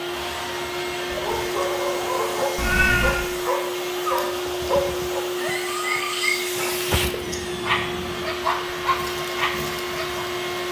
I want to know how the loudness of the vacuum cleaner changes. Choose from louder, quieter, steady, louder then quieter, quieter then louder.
steady.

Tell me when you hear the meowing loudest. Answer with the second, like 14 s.
3 s.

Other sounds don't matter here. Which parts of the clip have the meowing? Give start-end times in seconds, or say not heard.
2.5-3.2, 7.2-8.2.